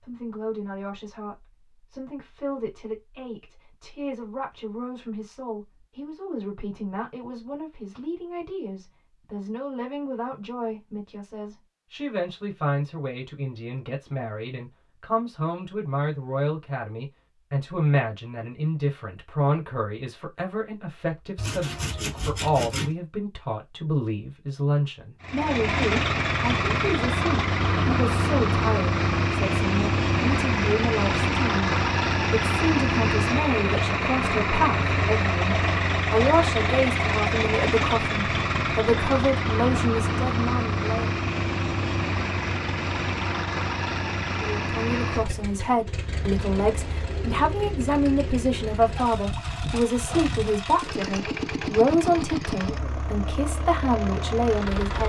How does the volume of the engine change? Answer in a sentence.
The loudness of the engine goes down.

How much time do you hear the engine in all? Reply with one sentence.
The engine can be heard for 30 seconds in total.